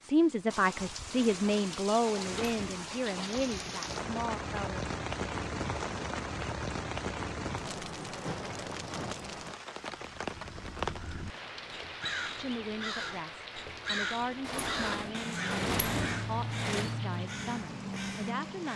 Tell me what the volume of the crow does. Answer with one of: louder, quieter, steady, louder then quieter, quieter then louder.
louder.